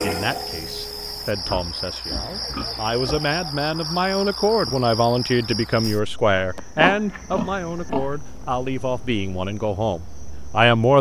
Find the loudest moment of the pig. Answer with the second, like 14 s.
7 s.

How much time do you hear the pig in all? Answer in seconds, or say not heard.
4 s.